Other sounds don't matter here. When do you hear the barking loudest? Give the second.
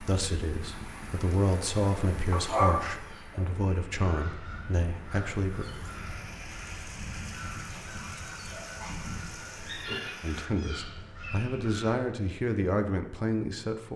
3 s.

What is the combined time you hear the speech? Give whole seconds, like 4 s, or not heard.
9 s.